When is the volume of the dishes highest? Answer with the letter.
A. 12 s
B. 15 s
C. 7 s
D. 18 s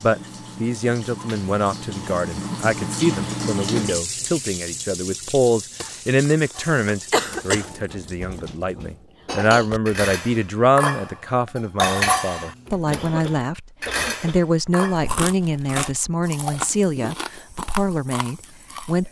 A.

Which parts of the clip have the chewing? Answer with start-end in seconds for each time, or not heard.
14.8-19.0.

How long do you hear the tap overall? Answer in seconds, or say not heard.
9 s.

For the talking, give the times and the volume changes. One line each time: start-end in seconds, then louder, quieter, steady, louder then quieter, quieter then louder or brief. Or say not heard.
0.0-19.0 steady.